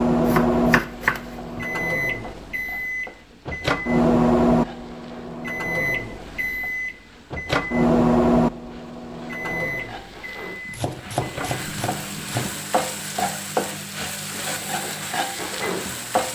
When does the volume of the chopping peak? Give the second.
1 s.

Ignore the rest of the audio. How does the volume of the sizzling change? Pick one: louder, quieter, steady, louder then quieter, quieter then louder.
louder.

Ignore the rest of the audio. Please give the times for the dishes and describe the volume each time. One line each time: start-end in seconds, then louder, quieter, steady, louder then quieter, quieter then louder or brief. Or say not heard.
not heard.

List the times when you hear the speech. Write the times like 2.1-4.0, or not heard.
not heard.